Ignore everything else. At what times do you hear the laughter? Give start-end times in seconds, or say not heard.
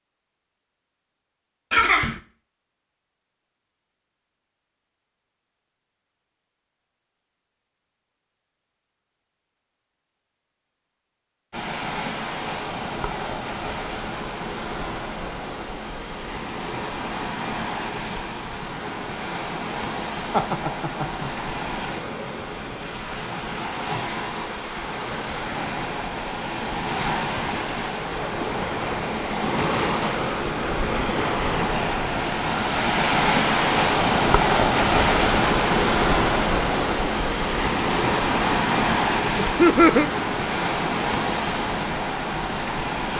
1.7-2.2, 20.3-21.3, 39.4-40.1.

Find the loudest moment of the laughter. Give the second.
40 s.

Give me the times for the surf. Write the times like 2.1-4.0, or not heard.
11.5-43.1.